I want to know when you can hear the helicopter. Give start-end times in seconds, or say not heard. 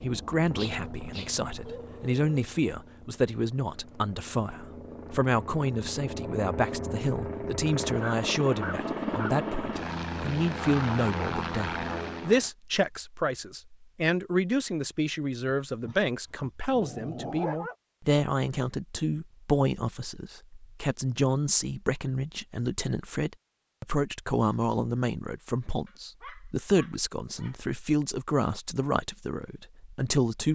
0.0-12.5.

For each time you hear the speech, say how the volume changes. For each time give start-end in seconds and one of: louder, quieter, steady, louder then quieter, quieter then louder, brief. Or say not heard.
0.0-30.5 steady.